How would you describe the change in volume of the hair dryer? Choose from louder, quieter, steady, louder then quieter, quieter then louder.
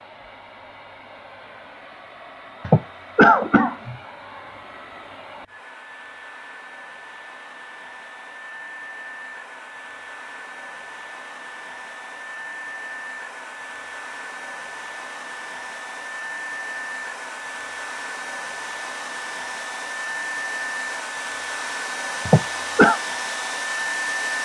louder.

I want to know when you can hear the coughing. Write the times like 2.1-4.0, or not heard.
2.6-4.0, 22.2-23.0.